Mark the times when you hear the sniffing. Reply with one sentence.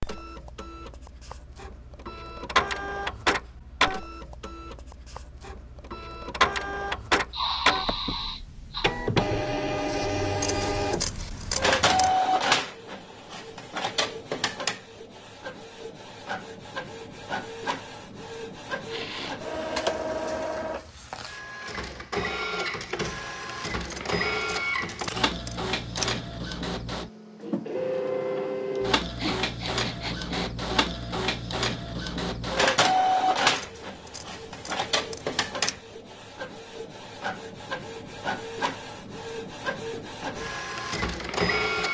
The sniffing can be heard from 7.3 to 8.9 s, from 18.9 to 19.4 s and from 28.8 to 30.5 s.